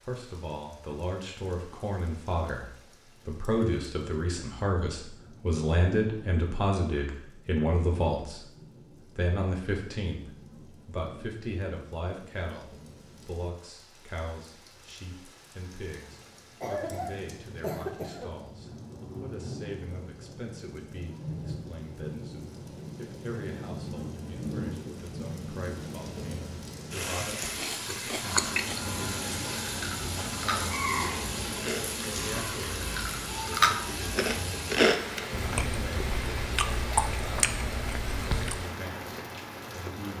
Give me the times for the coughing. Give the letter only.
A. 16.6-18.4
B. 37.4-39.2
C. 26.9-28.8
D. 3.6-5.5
A.